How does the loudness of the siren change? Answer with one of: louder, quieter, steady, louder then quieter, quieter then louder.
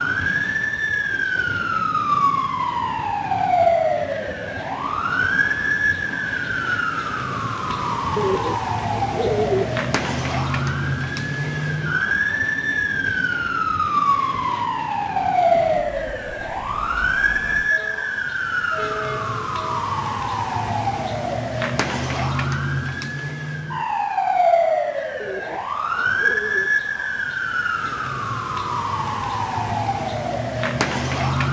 steady.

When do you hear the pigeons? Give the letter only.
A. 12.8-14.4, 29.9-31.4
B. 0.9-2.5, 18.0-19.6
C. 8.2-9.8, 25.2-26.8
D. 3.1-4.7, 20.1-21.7
C.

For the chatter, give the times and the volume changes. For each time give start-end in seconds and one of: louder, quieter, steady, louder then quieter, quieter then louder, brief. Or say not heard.
not heard.